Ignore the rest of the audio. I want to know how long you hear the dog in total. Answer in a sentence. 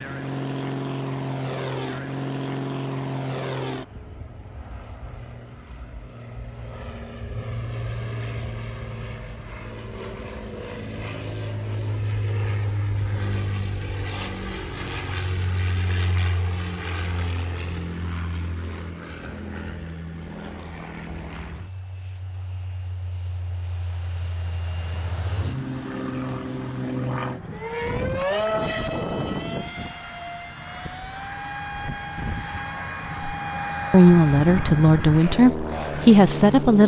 The dog can't be heard in this clip.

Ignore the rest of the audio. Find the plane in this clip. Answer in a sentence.
The plane can be heard from 0.0 to 36.8 s.